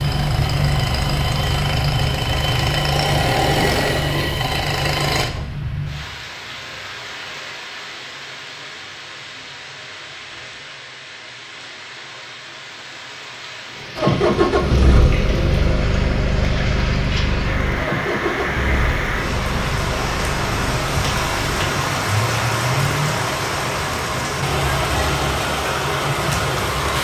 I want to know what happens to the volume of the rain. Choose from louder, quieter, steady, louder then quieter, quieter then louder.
quieter then louder.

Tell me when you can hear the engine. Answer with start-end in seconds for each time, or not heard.
0.0-5.3, 13.9-23.2.